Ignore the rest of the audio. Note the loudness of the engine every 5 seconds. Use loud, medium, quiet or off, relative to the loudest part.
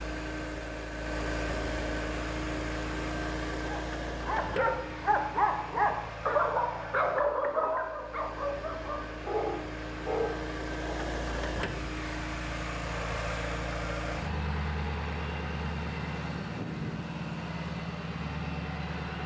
loud, medium, loud, loud.